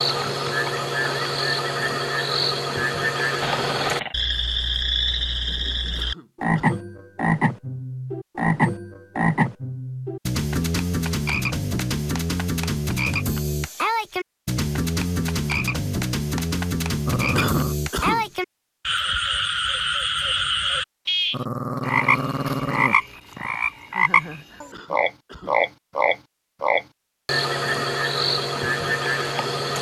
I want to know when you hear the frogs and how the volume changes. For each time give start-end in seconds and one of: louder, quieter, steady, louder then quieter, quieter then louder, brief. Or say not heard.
0.0-29.7 steady.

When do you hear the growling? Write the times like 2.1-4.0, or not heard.
3.4-4.2, 17.1-17.8, 21.3-23.6.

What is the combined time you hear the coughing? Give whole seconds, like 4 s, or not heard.
3 s.